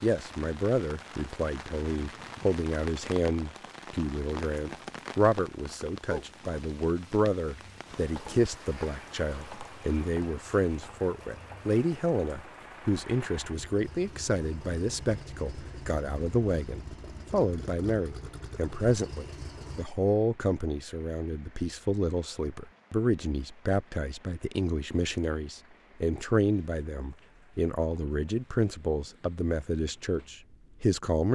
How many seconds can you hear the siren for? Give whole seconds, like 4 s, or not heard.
not heard.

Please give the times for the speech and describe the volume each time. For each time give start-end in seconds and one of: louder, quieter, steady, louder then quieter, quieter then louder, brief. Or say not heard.
0.0-31.2 steady.